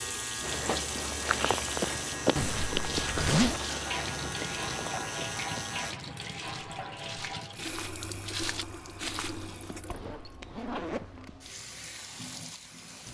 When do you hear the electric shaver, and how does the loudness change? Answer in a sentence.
The electric shaver can be heard from 0.0 to 6.0 s, at a steady volume.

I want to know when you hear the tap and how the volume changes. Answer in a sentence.
You can hear the tap from 0.0 to 13.1 s, getting quieter.